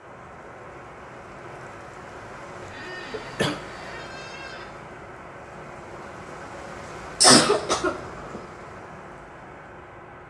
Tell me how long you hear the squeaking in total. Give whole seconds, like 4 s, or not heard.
2 s.